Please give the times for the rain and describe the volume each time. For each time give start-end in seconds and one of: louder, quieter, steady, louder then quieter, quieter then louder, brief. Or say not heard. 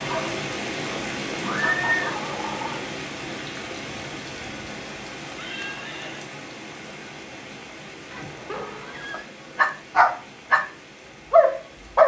0.0-12.0 quieter.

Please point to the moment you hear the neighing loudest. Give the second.
2 s.